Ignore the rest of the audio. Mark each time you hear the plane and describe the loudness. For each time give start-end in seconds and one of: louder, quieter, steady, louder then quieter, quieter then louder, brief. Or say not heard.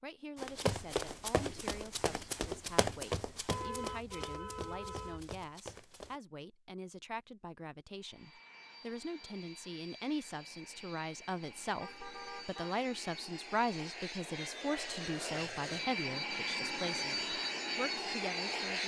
8.0-18.8 louder.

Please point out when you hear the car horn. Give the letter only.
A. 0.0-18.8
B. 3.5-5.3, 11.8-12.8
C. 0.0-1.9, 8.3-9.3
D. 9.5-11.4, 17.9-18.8
B.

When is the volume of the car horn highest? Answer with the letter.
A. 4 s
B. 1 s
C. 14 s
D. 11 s
A.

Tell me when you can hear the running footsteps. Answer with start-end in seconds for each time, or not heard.
0.3-6.2.